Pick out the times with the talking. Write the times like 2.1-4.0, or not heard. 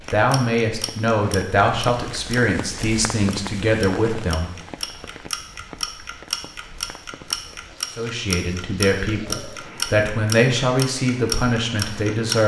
0.1-4.5, 8.0-12.4.